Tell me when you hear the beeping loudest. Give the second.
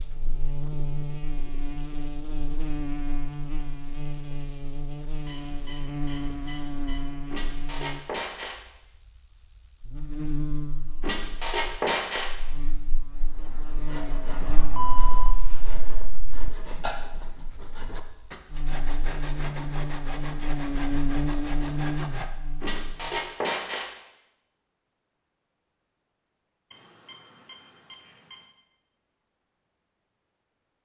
15 s.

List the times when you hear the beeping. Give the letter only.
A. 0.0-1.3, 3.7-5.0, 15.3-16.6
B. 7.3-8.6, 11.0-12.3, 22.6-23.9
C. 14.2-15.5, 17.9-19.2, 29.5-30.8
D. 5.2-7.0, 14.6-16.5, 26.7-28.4
D.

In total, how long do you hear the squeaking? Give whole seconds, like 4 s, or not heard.
4 s.